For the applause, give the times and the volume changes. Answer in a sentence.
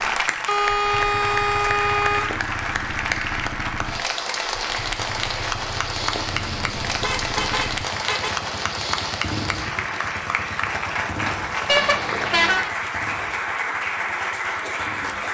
You can hear the applause from 0.0 to 15.2 s, at a steady volume.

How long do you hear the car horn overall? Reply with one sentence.
You can hear the car horn for 5 seconds altogether.